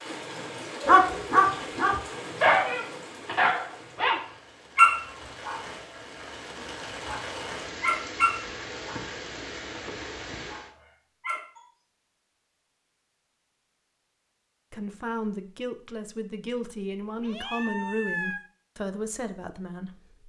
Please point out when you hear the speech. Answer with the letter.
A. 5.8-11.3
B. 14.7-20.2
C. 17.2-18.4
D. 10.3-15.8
B.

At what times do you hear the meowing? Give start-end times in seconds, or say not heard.
17.2-18.4.